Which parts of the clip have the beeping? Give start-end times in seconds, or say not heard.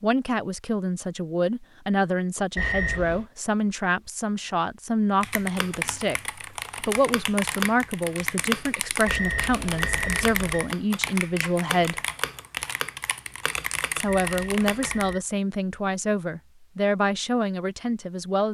2.5-3.2, 9.1-10.7, 14.1-15.2.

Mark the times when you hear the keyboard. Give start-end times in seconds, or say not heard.
5.2-15.2.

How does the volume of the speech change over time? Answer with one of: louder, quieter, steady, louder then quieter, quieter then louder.
steady.